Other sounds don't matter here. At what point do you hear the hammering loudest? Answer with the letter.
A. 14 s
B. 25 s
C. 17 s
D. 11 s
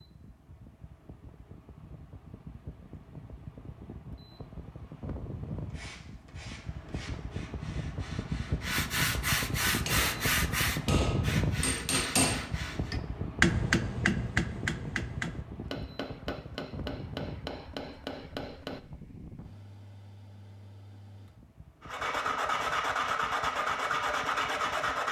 A.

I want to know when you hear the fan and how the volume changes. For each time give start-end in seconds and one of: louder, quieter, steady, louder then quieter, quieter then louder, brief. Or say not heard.
0.0-25.0 louder then quieter.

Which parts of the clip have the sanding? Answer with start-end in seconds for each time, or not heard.
5.7-13.0, 21.8-25.0.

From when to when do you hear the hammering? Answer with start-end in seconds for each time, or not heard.
9.8-18.8.